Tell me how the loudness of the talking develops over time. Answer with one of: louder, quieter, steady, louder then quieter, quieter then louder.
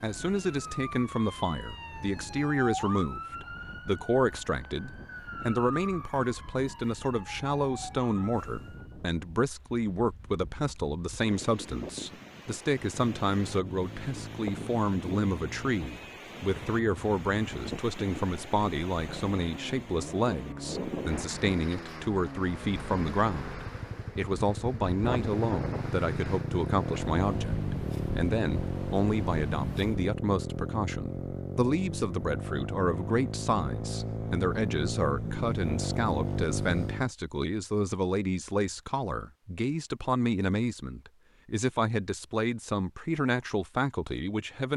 steady.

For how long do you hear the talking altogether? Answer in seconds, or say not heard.
45 s.